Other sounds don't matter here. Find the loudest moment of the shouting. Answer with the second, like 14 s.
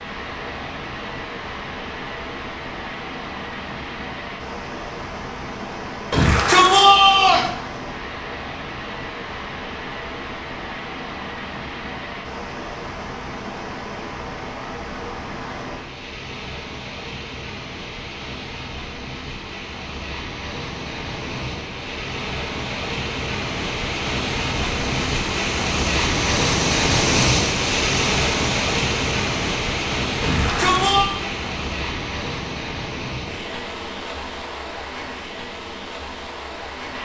7 s.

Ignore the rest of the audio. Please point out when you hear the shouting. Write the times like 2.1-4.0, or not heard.
6.1-7.5, 30.2-31.1.